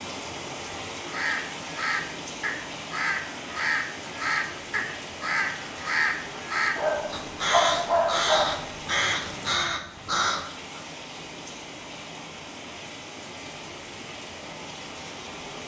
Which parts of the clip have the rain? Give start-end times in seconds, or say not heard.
0.0-15.6.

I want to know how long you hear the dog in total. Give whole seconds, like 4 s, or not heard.
2 s.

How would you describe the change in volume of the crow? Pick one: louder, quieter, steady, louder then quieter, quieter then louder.
steady.